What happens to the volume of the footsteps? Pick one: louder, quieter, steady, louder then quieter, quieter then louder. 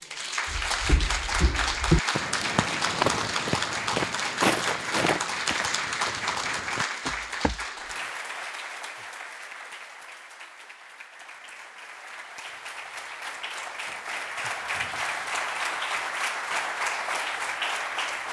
quieter.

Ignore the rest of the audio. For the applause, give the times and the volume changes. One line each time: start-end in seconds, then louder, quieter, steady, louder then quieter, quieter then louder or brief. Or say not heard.
0.0-18.2 quieter then louder.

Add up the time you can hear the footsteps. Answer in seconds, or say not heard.
7 s.